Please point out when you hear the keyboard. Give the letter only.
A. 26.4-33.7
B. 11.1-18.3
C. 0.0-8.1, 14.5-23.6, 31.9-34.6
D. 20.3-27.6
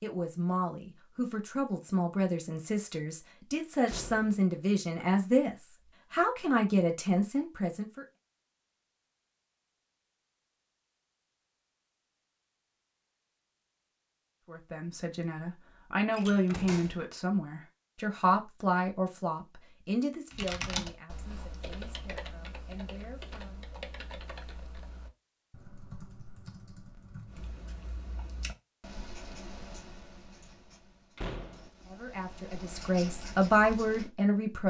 D.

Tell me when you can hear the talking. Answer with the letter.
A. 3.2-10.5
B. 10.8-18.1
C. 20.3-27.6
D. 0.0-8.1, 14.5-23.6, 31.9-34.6
D.